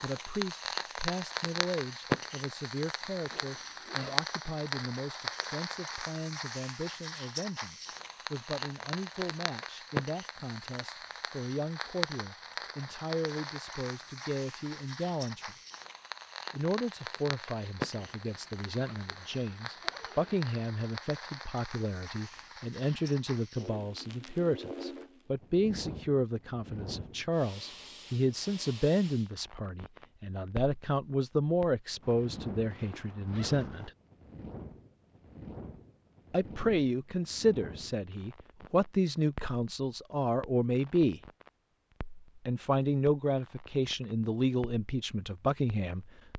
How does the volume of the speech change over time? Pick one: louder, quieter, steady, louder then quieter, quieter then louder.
louder.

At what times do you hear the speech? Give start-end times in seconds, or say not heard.
0.0-15.6, 16.5-33.9, 36.3-41.2, 42.5-46.0.